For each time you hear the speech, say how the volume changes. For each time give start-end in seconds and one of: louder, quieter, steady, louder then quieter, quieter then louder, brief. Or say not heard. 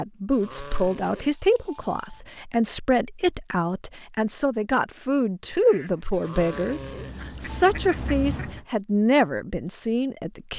0.0-10.5 steady.